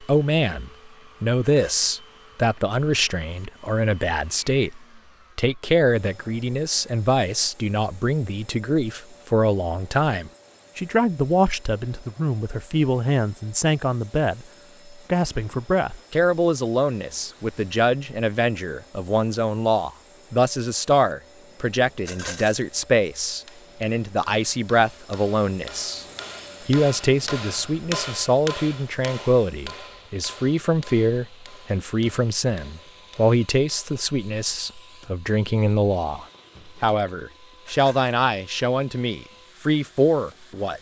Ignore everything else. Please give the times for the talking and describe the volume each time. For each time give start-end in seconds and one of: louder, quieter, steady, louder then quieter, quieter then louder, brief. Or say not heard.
0.0-26.1 steady
26.6-40.7 steady.